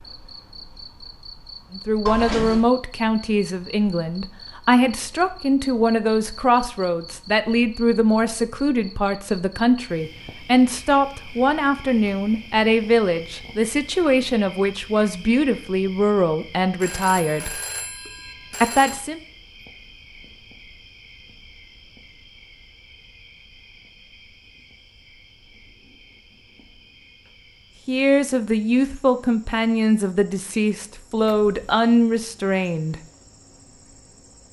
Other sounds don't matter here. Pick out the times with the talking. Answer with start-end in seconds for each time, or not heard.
1.7-17.6, 18.6-19.2, 27.9-33.0.